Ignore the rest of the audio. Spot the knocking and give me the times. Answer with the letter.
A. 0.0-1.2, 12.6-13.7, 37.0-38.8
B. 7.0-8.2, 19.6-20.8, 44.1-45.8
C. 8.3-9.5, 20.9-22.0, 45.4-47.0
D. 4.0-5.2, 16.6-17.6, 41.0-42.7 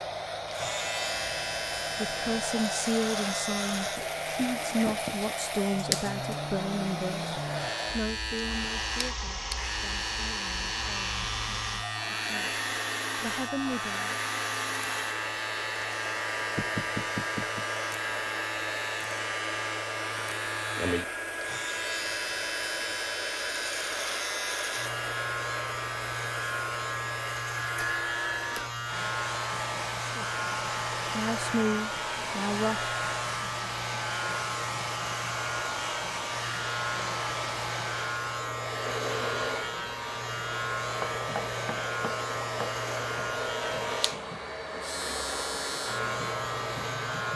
D.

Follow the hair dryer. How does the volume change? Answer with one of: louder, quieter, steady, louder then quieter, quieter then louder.
steady.